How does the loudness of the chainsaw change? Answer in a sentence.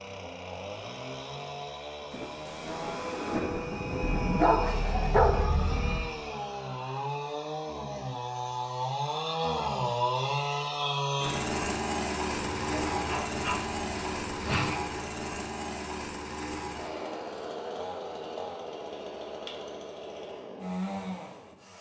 The loudness of the chainsaw goes up, then down.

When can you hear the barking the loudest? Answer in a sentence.
The loudest moment of the barking is at 5 seconds.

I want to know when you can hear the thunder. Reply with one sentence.
You can hear the thunder from 2.1 to 4.5 s.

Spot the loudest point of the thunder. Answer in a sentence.
The volume of the thunder peaks at 3 seconds.